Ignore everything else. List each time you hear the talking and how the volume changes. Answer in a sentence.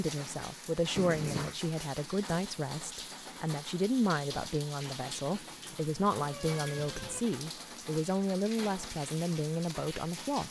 The talking can be heard from 0.0 to 10.4 s, at a steady volume.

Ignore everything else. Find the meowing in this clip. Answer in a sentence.
The meowing can be heard from 0.9 to 1.6 s and from 5.3 to 7.2 s.